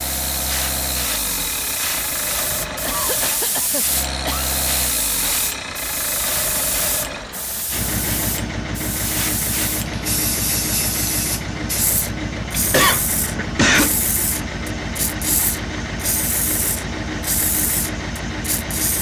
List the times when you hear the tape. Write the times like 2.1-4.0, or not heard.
not heard.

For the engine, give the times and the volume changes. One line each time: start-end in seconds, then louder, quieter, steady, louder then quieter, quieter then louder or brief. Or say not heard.
0.0-18.9 steady.